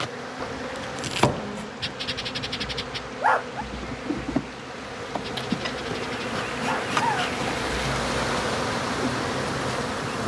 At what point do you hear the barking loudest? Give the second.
3 s.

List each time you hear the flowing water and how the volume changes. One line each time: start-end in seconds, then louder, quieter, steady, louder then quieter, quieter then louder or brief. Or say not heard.
0.0-10.2 louder.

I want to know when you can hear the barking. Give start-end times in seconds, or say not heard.
1.8-3.6, 5.2-7.3.